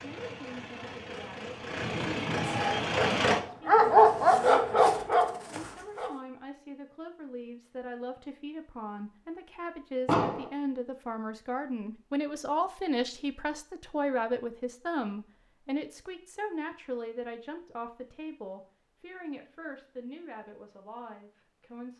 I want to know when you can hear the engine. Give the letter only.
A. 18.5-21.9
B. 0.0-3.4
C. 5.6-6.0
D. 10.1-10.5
B.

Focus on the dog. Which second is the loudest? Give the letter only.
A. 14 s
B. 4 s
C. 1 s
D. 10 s
B.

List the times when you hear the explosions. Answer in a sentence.
The explosions can be heard from 10.1 to 10.5 s.